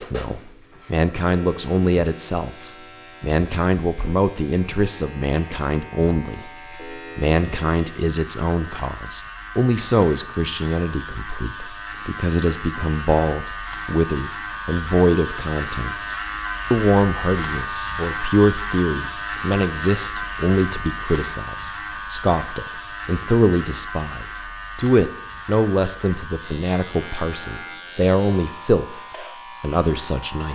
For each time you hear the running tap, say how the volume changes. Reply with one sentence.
The running tap can't be heard in this clip.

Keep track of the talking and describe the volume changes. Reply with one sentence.
The volume of the talking stays about the same.